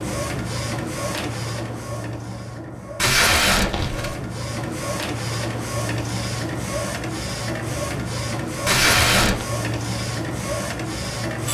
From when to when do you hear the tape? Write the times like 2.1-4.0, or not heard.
3.0-4.2, 8.7-9.4.